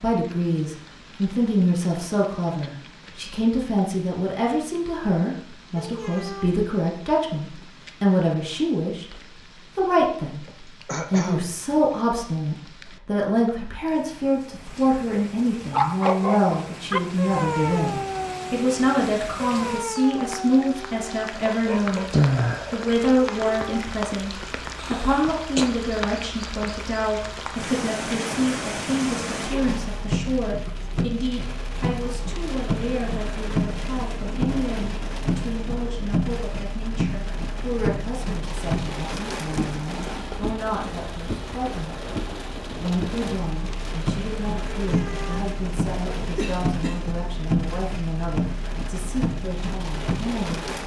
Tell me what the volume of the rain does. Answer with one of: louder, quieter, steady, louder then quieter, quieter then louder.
louder.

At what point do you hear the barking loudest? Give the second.
16 s.